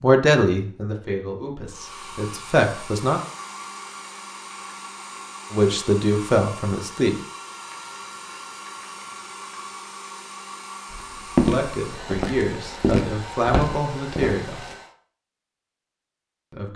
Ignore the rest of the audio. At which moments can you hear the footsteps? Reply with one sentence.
You can hear the footsteps from 10.9 to 14.8 s.